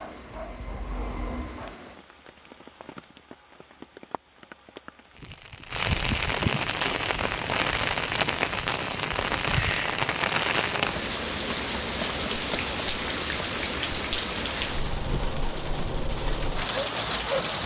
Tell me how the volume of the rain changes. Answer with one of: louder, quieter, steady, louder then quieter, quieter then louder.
louder.